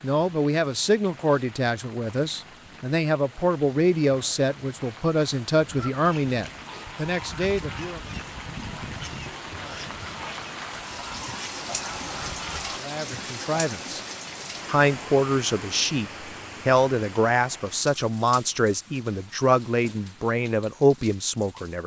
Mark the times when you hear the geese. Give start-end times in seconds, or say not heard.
5.7-12.8.